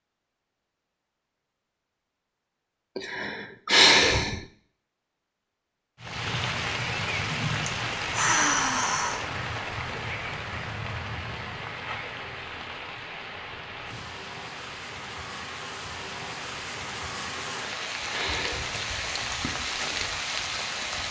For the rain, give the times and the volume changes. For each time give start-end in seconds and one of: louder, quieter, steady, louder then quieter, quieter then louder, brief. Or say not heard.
6.0-21.0 quieter then louder.